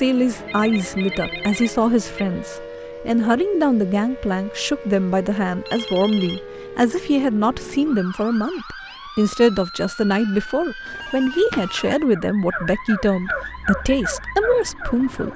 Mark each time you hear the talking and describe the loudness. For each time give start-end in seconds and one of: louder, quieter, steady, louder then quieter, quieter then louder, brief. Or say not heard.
0.0-15.3 steady.